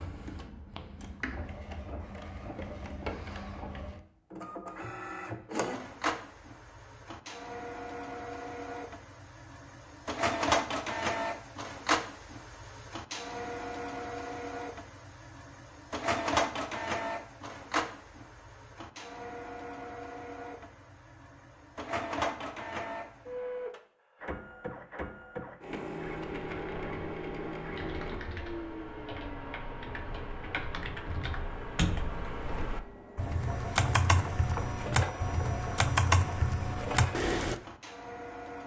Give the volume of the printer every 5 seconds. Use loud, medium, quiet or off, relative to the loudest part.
medium, medium, loud, loud, medium, medium, medium, medium.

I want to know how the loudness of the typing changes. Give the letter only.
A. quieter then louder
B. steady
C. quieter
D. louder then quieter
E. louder
E.